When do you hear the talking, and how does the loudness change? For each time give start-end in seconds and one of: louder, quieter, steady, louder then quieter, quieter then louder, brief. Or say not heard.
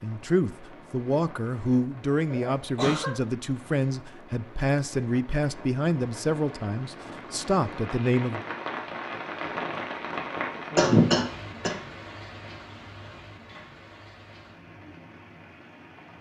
0.0-8.4 steady.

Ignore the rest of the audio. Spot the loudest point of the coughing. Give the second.
11 s.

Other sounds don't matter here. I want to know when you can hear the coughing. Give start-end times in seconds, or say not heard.
2.2-3.1, 10.8-11.8.